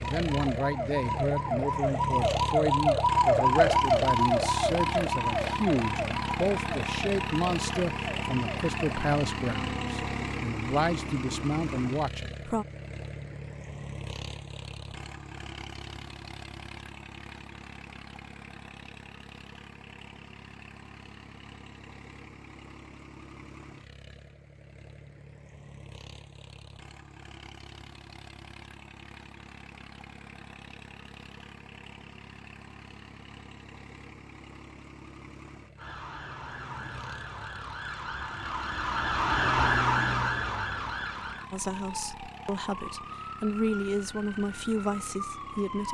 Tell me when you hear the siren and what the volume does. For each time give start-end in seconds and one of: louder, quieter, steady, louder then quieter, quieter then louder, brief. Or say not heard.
0.0-10.2 louder then quieter
35.8-45.8 louder then quieter.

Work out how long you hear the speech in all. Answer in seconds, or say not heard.
17 s.